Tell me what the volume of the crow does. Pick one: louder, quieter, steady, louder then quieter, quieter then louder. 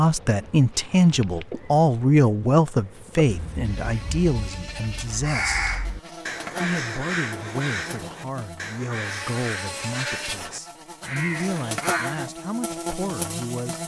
louder then quieter.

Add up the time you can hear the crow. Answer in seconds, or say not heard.
9 s.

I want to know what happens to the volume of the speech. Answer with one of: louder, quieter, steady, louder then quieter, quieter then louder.
quieter.